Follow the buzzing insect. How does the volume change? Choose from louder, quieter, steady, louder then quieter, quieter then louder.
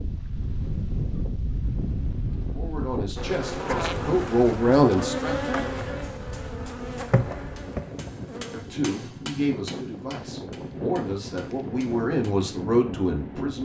quieter.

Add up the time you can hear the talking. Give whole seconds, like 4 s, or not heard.
8 s.